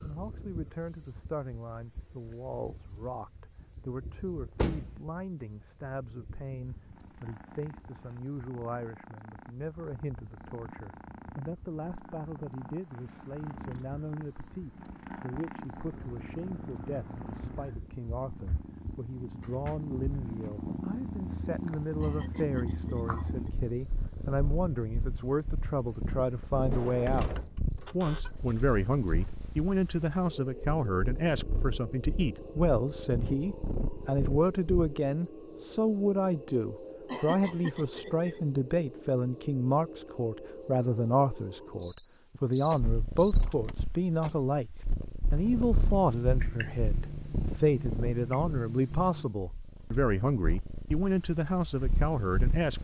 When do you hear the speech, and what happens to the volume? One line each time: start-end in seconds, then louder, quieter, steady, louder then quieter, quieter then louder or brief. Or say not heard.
0.0-52.7 louder.